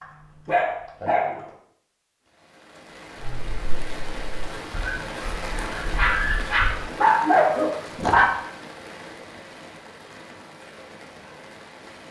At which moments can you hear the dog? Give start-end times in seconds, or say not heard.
0.0-1.5, 3.2-8.3.